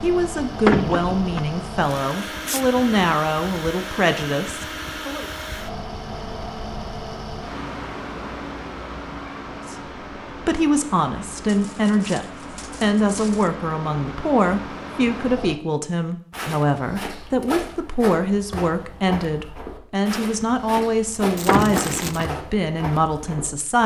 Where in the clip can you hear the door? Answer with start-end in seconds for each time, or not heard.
0.7-1.4, 21.4-22.2.